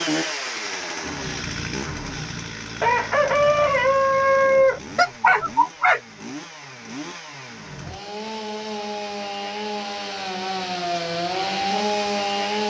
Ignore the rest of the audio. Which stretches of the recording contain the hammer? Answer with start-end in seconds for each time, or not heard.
not heard.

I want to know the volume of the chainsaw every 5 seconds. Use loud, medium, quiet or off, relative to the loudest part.
medium, medium, loud.